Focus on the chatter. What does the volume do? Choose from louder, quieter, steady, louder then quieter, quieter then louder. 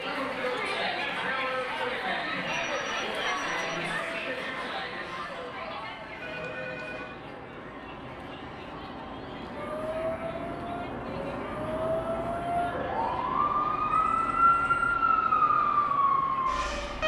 quieter.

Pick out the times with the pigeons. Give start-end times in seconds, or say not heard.
not heard.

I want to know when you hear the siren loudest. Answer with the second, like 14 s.
15 s.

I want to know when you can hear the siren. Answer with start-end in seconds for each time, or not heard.
9.6-17.0.